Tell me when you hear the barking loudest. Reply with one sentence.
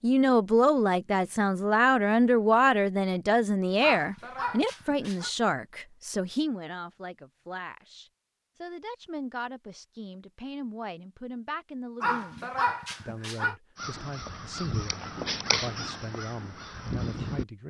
The loudest moment of the barking is at 13 seconds.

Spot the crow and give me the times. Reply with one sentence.
You can hear the crow from 13.8 to 17.4 s.